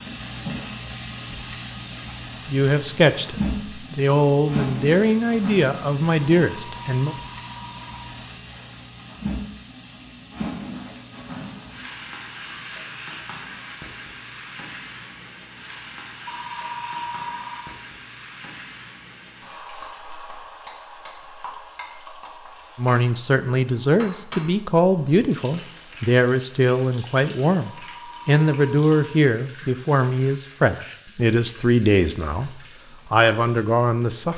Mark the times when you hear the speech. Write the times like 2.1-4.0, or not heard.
2.5-7.2, 22.8-34.3.